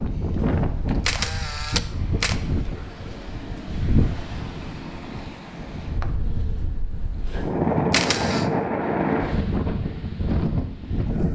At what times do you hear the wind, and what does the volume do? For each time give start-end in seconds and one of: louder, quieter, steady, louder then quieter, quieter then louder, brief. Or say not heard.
0.0-11.3 quieter then louder.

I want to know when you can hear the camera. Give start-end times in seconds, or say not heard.
0.4-2.4, 7.2-8.5.